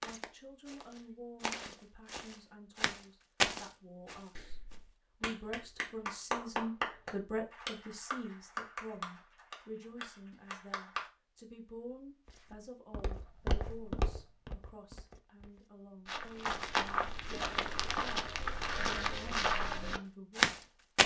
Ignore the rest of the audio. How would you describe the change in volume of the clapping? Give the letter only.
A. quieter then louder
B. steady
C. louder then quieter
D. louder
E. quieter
C.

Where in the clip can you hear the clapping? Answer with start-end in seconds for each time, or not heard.
4.0-11.1.